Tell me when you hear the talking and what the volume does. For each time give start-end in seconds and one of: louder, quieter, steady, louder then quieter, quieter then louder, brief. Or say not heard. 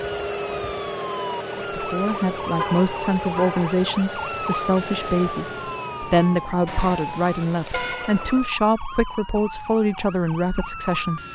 1.7-11.2 steady.